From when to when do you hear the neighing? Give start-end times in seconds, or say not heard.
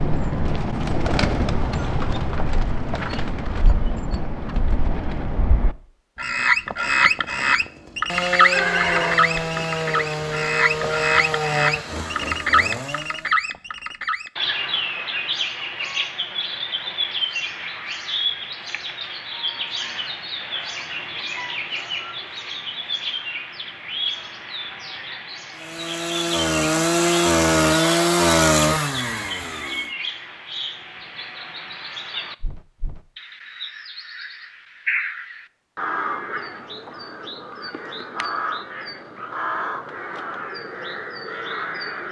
8.5-11.1.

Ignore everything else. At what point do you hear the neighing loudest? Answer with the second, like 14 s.
9 s.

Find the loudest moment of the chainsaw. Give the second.
28 s.